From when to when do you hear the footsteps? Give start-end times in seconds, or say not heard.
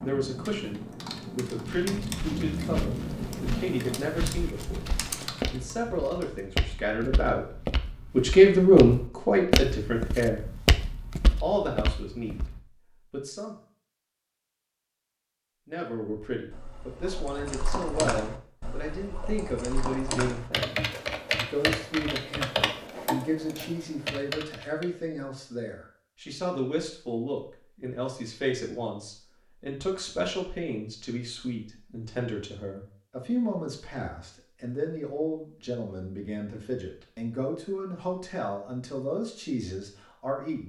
1.6-12.6.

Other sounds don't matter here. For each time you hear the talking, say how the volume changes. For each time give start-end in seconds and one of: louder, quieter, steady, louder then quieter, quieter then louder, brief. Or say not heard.
0.0-10.6 louder
11.4-13.6 brief
15.7-40.6 steady.